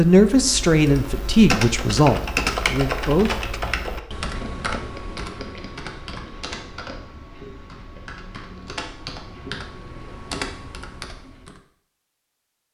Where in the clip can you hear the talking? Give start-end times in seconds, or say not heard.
0.0-3.6.